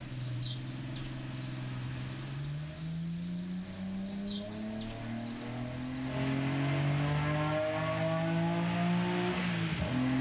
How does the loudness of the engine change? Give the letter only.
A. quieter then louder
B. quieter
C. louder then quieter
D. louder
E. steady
D.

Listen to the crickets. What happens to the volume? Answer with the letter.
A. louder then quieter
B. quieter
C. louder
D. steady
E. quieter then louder
B.